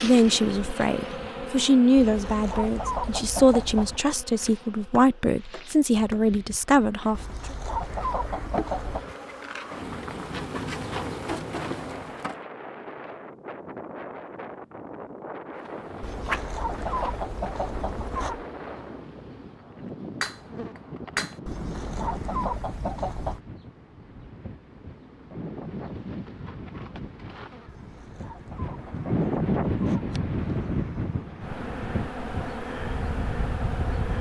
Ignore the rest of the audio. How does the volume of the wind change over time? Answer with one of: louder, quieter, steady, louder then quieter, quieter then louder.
louder.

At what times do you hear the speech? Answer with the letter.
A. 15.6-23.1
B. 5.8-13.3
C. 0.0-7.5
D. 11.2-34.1
C.